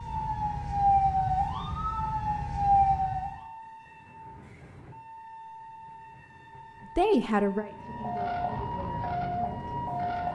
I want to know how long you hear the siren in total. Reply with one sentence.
The siren can be heard for 6 seconds in total.